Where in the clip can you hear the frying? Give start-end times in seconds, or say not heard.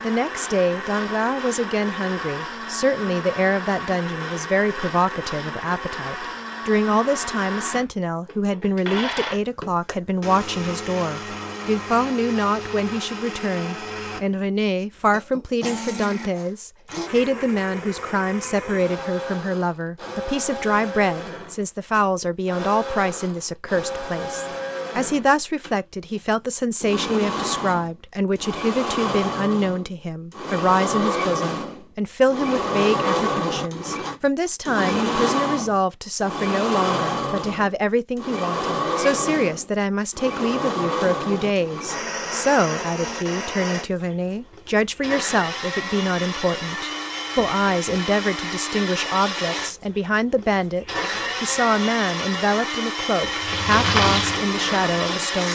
53.4-55.4.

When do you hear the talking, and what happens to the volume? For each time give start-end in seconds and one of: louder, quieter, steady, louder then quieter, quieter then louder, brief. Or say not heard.
0.0-55.5 steady.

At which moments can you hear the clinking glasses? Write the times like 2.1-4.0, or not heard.
not heard.